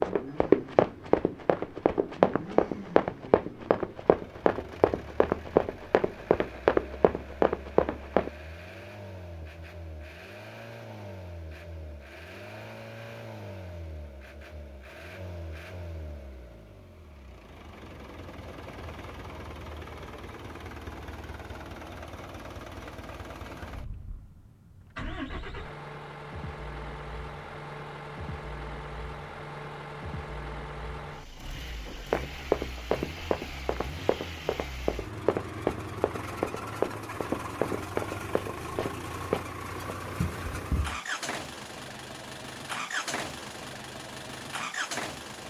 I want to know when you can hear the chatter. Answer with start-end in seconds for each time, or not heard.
not heard.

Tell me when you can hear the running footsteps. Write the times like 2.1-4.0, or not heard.
0.0-8.3, 31.9-41.0.